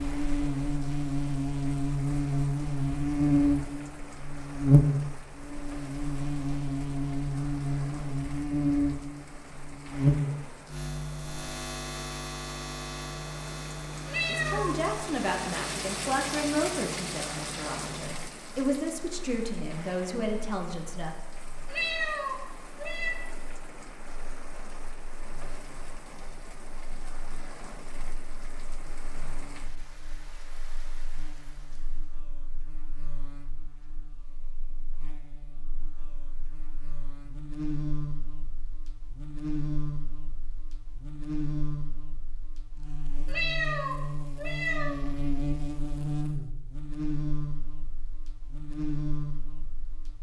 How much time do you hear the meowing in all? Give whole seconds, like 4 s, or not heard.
4 s.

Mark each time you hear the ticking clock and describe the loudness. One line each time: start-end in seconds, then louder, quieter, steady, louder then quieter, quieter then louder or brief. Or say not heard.
not heard.